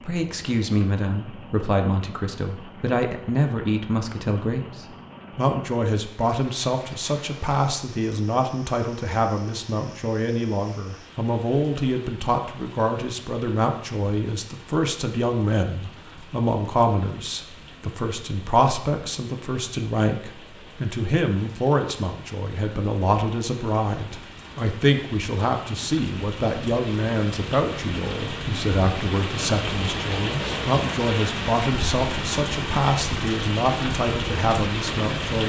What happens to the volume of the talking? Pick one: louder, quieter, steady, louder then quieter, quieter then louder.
steady.